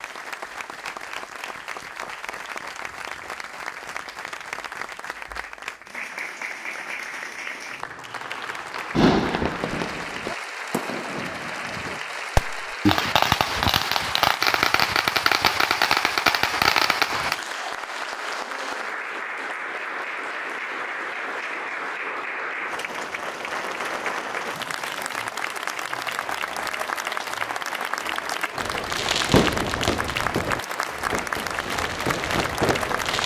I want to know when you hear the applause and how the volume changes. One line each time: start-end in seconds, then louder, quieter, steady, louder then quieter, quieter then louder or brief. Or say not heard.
0.0-33.2 louder.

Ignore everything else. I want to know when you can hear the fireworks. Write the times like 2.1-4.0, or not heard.
8.9-17.4, 28.6-33.2.